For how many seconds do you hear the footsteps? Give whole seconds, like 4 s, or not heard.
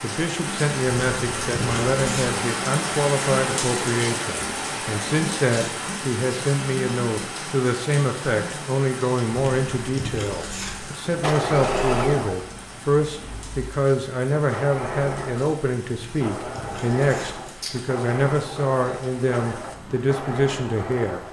not heard.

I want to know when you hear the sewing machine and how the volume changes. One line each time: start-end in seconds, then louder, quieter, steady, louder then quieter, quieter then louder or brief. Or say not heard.
11.1-21.2 quieter.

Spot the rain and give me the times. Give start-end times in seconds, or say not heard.
0.0-21.2.